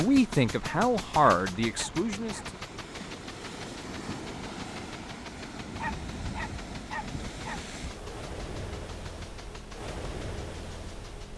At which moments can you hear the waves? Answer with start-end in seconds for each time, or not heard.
0.0-11.3.